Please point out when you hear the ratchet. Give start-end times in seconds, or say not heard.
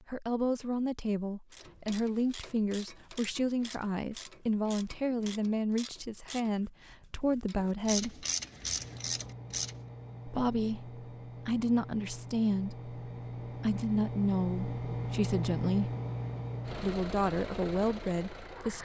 1.5-9.8.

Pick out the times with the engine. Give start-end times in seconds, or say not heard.
8.6-18.7.